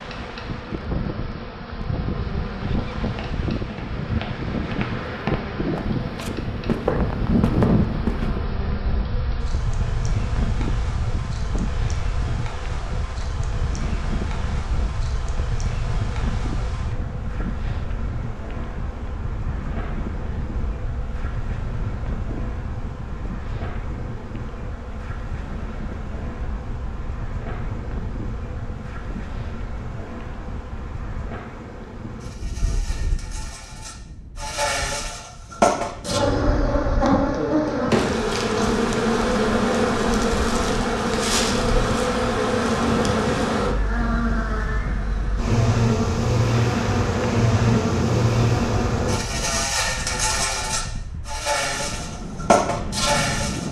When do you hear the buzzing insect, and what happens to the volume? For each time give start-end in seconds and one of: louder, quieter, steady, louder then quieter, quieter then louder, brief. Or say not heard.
0.0-53.6 louder.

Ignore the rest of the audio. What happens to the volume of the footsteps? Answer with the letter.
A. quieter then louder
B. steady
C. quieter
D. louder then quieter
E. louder
E.